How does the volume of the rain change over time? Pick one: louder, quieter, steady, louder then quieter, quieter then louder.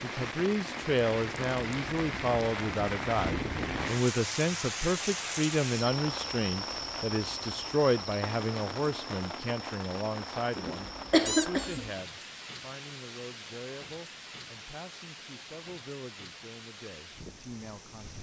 quieter.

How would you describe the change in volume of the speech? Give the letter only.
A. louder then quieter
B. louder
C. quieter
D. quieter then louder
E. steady
C.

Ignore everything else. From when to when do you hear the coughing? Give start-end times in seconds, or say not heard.
10.6-11.9.